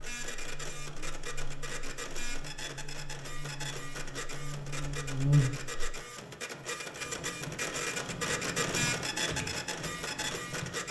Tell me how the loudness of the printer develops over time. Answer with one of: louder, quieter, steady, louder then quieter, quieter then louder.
louder.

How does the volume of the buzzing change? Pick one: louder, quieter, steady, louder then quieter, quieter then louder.
louder.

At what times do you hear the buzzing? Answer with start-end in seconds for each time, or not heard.
0.0-5.9.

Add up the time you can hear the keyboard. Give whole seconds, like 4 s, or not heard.
4 s.